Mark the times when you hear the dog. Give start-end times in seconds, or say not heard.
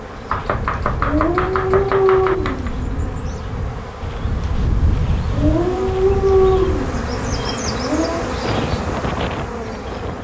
1.0-3.1, 5.3-8.3.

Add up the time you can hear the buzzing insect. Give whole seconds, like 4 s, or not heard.
10 s.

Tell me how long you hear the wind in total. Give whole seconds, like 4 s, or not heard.
10 s.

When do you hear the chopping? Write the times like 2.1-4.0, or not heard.
0.2-2.7.